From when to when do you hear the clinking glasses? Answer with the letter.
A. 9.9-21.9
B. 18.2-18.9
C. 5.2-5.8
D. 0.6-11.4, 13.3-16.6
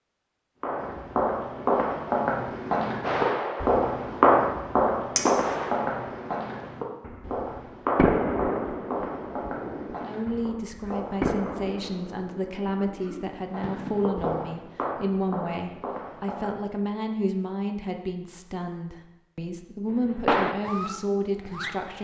C.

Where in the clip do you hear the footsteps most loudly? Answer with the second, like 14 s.
4 s.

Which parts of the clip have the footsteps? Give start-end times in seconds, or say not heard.
0.6-11.4, 13.3-16.6.